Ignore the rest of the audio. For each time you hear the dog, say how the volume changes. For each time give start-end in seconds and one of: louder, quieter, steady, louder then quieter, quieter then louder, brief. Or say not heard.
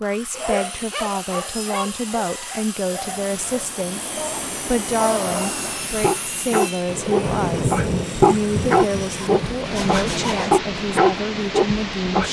0.3-12.2 louder.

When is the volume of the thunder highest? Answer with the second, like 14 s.
8 s.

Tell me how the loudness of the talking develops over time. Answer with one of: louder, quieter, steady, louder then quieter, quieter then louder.
steady.